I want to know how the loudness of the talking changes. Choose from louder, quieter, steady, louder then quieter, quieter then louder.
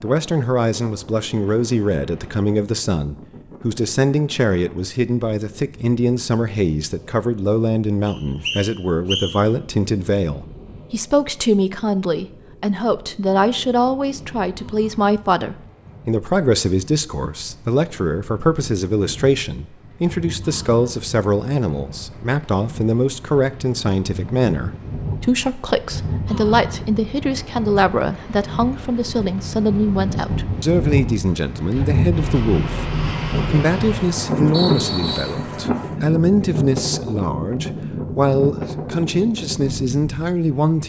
steady.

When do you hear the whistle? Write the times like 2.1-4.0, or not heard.
8.1-9.3, 34.5-35.4.